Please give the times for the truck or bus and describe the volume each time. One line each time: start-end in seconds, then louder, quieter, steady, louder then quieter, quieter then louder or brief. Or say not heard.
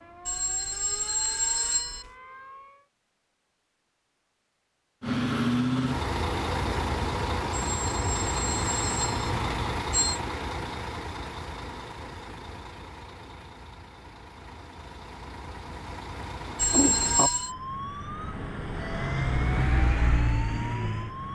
5.0-21.2 quieter then louder.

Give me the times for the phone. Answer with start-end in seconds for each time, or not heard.
0.2-2.1, 7.5-10.2, 16.6-17.6.